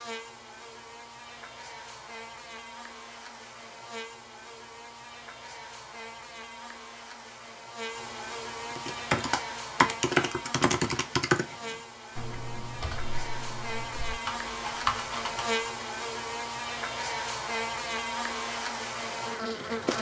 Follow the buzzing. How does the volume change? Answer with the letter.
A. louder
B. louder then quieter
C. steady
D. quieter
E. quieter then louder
A.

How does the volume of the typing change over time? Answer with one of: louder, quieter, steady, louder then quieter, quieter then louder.
quieter then louder.